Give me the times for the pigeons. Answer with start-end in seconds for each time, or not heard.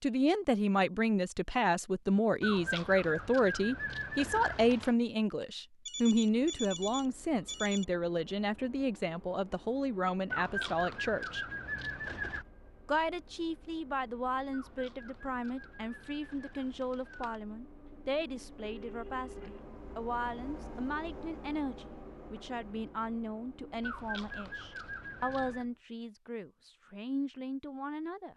2.4-5.0, 10.3-12.4, 14.5-17.4, 23.8-25.6.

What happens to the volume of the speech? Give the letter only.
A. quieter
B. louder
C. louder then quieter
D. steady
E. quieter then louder
A.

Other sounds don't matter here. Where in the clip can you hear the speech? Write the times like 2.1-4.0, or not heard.
0.0-11.4, 12.8-28.3.